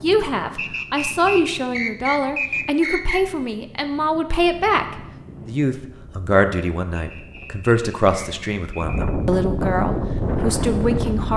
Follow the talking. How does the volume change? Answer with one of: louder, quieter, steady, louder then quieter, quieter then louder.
steady.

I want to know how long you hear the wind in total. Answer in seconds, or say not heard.
11 s.